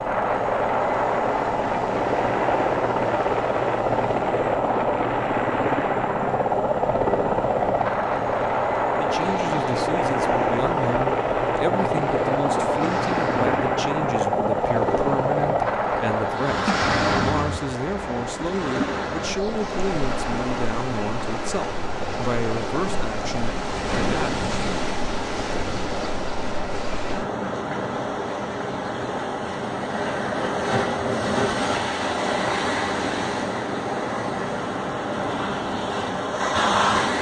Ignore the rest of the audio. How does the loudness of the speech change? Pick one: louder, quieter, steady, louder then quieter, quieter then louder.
steady.